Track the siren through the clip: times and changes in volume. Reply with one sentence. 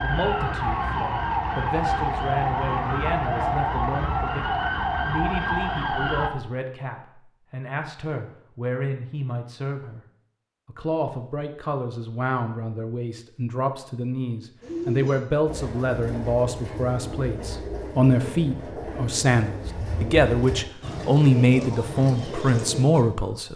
You can hear the siren from 0.0 to 6.3 s, at a steady volume.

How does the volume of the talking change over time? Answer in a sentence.
The loudness of the talking goes up.